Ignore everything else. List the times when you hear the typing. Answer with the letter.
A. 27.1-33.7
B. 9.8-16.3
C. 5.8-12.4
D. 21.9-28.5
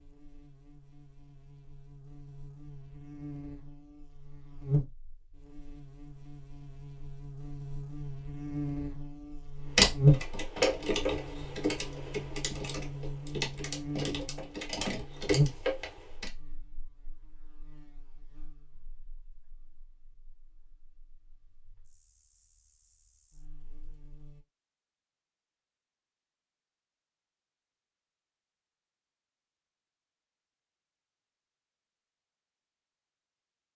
B.